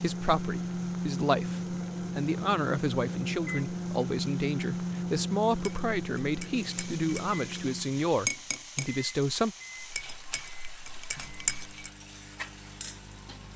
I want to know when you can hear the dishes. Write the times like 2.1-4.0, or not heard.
5.6-7.3, 8.2-8.9, 9.8-11.9.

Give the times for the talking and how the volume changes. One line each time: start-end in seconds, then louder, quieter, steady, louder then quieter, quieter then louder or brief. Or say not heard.
0.0-9.6 steady.